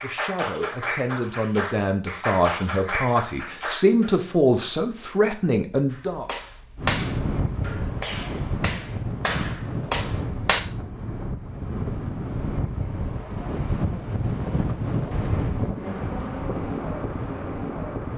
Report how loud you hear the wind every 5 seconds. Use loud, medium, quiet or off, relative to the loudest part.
off, loud, loud, loud.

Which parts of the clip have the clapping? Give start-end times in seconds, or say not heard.
0.0-4.2, 5.9-10.6.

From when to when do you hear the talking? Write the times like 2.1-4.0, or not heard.
0.0-6.2.